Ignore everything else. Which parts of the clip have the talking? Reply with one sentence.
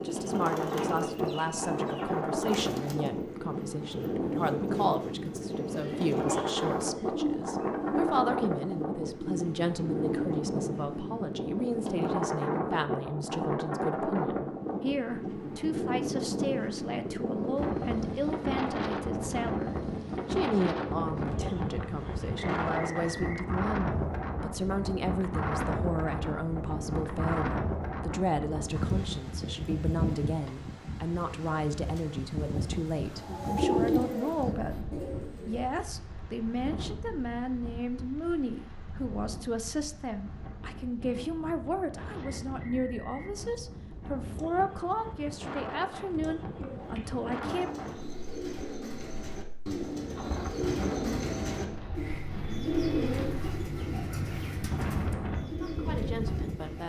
You can hear the talking from 0.1 to 34.8 s, from 35.5 to 47.7 s and from 55.5 to 56.8 s.